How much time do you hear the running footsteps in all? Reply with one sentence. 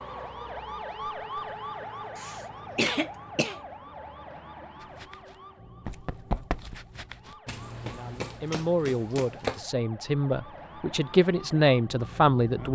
The running footsteps can be heard for 5 seconds in total.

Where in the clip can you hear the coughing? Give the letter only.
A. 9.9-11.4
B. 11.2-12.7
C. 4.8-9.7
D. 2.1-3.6
D.